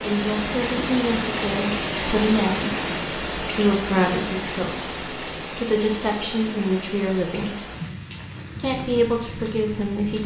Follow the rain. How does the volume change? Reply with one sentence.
The loudness of the rain goes down.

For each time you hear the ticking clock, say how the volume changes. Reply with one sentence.
The ticking clock can't be heard in this clip.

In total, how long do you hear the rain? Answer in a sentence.
The rain can be heard for 10 seconds in total.